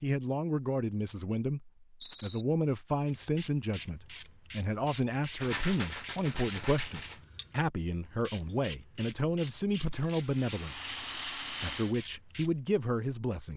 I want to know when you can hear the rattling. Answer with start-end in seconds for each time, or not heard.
2.0-2.5, 5.3-7.2, 9.9-11.9.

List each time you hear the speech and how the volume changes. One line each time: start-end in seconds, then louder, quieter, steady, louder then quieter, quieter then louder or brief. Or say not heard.
0.0-13.5 steady.